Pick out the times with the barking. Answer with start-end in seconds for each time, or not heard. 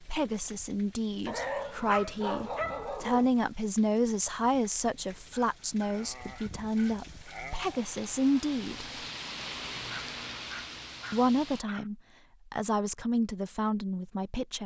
1.2-3.2, 5.2-7.8, 9.9-11.9.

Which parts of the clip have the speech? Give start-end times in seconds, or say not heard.
0.0-8.8, 11.1-14.6.